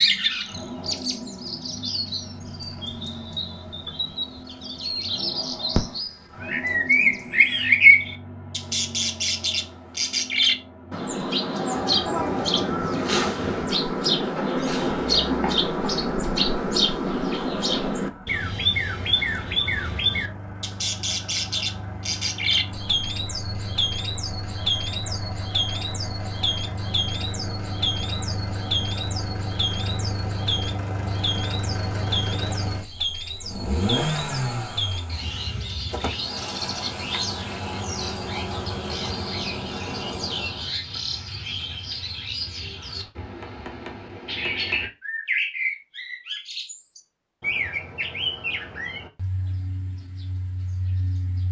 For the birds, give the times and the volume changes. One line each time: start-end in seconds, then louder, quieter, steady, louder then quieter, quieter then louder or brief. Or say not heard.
0.0-51.4 quieter.